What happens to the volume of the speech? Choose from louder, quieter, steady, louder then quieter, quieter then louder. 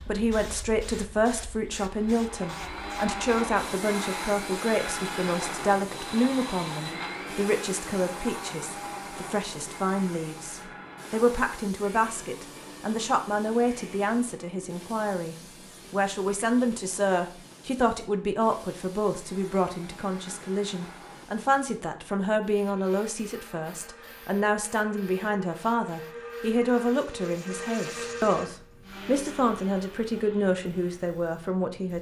steady.